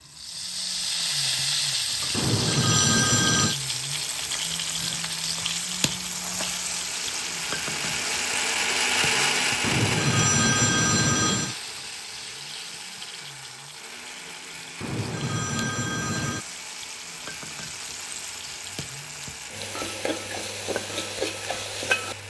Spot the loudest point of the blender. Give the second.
9 s.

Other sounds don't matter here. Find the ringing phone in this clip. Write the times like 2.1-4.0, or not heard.
2.1-3.5, 9.6-11.6, 14.8-16.4.